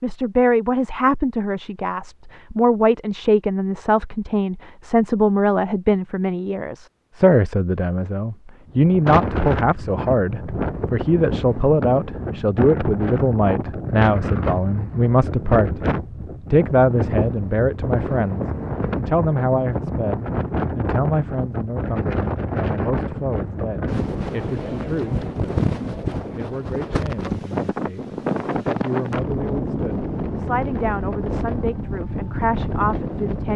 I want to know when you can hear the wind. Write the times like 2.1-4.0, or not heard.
8.7-33.5.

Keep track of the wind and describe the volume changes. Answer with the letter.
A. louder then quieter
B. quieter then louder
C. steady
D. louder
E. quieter
C.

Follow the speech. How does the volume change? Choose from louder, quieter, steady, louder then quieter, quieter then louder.
quieter.